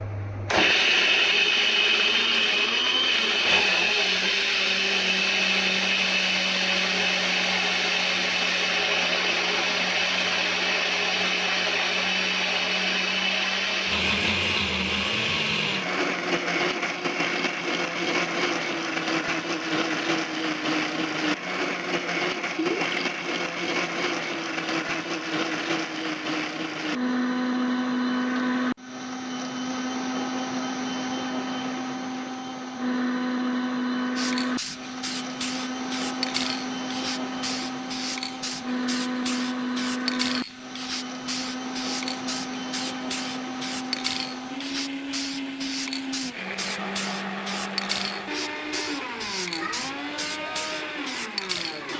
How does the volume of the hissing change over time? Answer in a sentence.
The volume of the hissing stays about the same.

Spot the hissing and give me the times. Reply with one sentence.
You can hear the hissing from 34.1 to 51.9 s.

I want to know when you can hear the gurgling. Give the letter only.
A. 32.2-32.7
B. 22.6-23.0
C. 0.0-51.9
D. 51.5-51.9
B.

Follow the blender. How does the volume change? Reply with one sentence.
The loudness of the blender goes down.